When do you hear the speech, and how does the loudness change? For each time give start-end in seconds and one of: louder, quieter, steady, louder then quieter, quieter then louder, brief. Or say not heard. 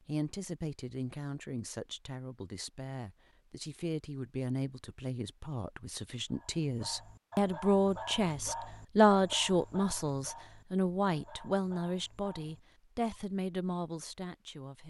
0.1-14.8 louder then quieter.